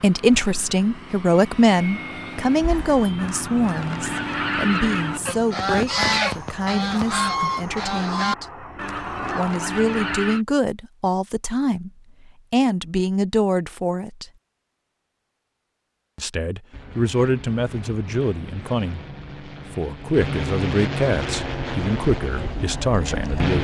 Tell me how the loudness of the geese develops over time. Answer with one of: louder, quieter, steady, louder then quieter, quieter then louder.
louder then quieter.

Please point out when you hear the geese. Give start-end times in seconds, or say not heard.
2.6-10.4.